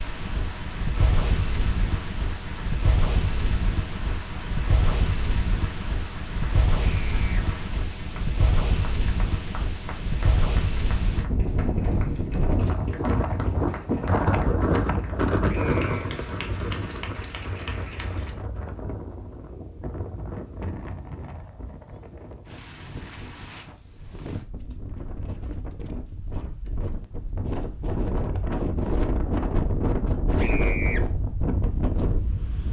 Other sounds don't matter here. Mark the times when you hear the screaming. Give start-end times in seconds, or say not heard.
7.0-7.5, 15.4-16.1, 30.4-31.0.